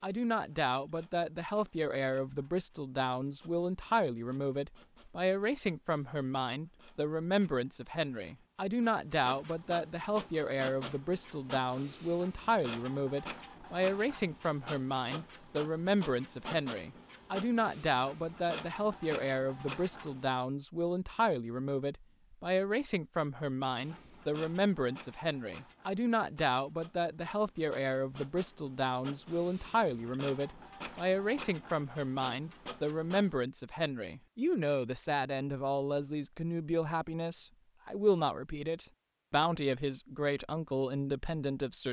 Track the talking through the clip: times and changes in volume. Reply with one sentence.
The talking can be heard from 0.0 to 41.8 s, at a steady volume.